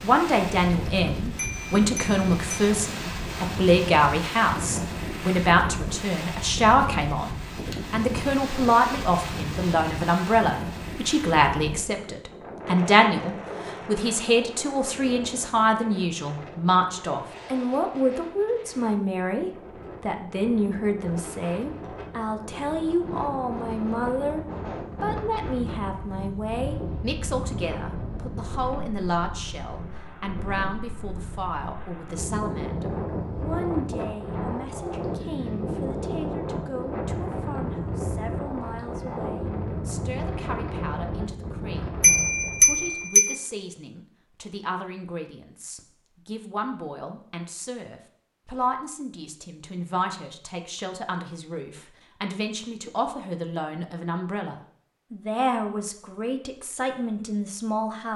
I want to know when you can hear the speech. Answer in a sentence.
You can hear the speech from 0.0 to 24.4 s and from 25.0 to 58.1 s.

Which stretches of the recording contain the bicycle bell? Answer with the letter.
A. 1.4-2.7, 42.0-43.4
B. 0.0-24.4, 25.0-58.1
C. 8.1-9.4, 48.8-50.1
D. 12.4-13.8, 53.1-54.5
A.